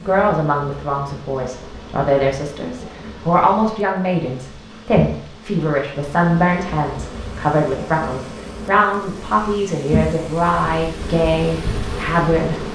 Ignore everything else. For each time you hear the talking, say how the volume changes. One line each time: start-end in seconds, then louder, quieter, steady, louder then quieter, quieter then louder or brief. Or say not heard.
0.0-12.7 steady.